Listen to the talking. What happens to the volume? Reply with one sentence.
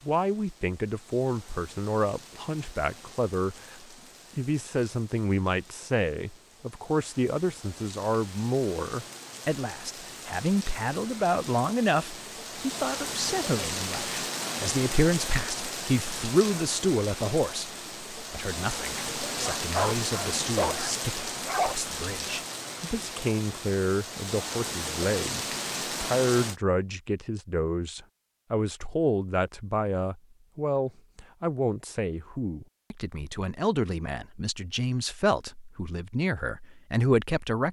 The volume of the talking stays about the same.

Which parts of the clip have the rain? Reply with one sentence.
The rain can be heard from 0.0 to 26.6 s.